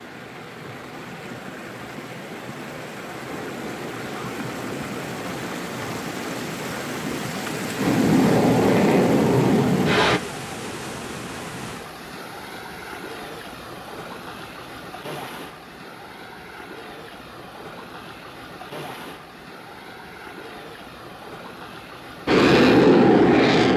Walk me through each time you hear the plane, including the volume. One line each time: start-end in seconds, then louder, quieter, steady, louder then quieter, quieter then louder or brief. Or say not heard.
3.2-10.2 louder
22.2-23.7 brief.